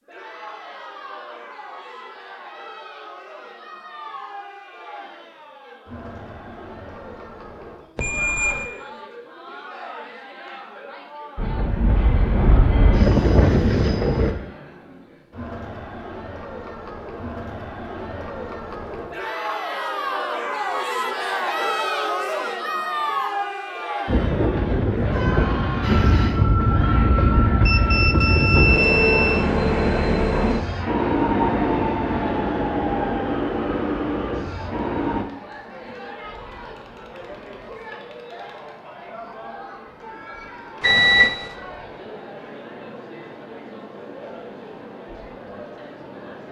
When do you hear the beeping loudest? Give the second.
41 s.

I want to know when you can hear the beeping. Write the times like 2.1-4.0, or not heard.
8.0-8.7, 27.6-29.4, 40.8-41.5.